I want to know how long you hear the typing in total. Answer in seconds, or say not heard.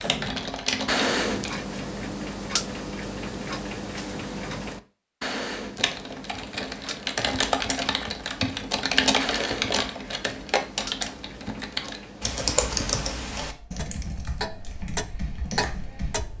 12 s.